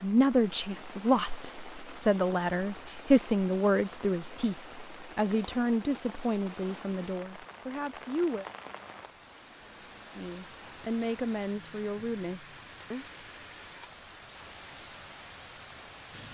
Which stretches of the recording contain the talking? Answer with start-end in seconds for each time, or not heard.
0.0-8.4, 10.2-13.1.